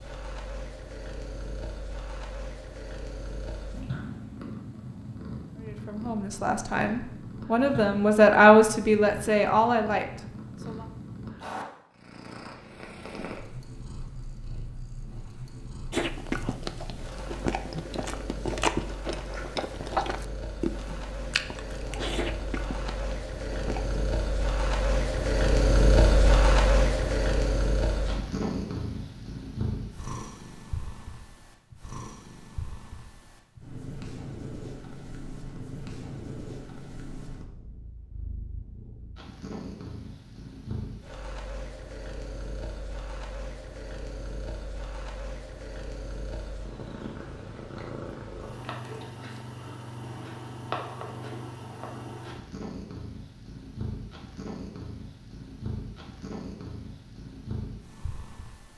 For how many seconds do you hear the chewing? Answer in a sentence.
The chewing can be heard for 8 seconds in total.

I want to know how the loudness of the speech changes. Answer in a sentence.
The volume of the speech goes up, then down.